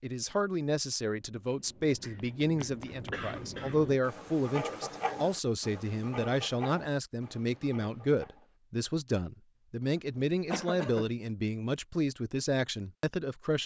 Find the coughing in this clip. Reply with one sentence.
The coughing can be heard from 2.0 to 3.8 s and from 10.2 to 11.1 s.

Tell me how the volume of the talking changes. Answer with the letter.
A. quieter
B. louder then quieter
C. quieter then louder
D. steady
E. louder
D.